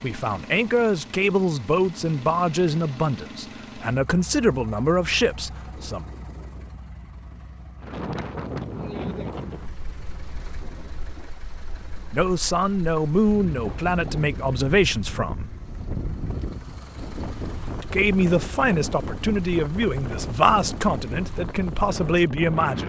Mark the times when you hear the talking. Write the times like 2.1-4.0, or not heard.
0.0-6.0, 12.1-15.5, 17.8-22.8.